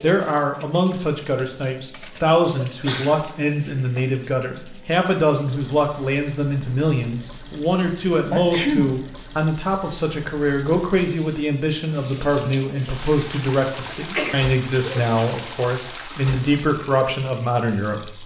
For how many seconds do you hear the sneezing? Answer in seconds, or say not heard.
3 s.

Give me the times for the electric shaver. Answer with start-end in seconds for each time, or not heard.
not heard.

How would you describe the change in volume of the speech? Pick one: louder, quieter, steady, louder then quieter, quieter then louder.
steady.